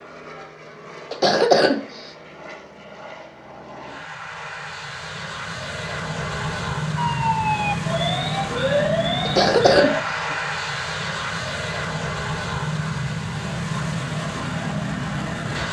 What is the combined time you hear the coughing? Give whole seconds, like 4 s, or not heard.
2 s.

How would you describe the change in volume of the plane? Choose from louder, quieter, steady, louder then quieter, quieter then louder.
louder.